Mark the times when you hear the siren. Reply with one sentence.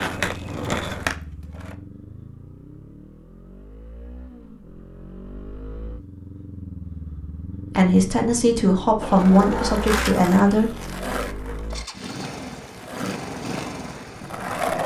The siren can't be heard in this clip.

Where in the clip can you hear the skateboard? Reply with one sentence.
The skateboard can be heard from 0.0 to 1.8 s and from 9.0 to 14.8 s.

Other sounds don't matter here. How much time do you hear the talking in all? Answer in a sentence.
You can hear the talking for 3 seconds altogether.